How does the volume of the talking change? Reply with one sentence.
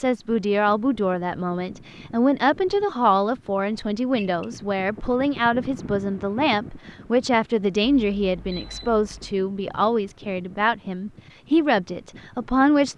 The loudness of the talking stays about the same.